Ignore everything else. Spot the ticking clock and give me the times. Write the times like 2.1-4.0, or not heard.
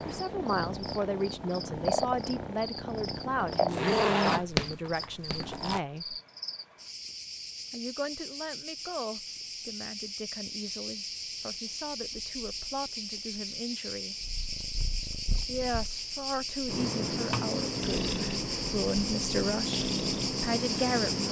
not heard.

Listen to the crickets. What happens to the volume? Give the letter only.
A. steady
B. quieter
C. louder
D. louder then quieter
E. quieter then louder
C.